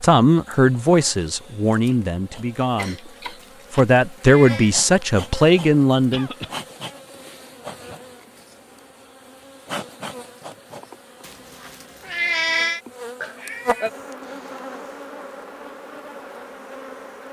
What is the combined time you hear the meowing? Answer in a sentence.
The meowing can be heard for 3 seconds in total.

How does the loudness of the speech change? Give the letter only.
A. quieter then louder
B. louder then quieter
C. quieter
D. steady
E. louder
A.